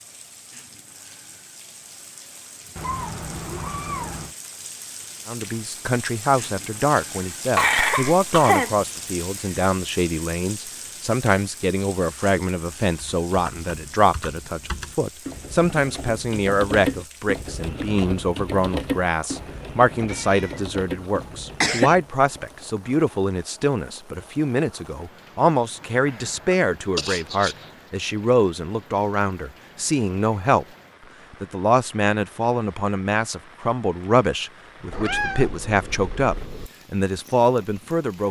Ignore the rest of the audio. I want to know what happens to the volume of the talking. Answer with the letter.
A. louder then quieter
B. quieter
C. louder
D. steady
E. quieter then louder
D.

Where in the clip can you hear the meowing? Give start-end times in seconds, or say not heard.
2.8-4.3, 19.3-20.6, 34.9-36.7.